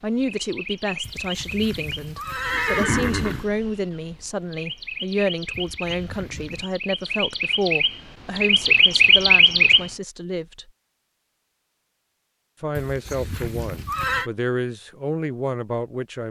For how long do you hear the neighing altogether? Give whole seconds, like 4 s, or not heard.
5 s.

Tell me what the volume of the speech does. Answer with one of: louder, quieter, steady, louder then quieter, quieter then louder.
steady.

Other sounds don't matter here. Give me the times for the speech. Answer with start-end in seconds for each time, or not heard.
0.0-10.7, 12.6-16.2.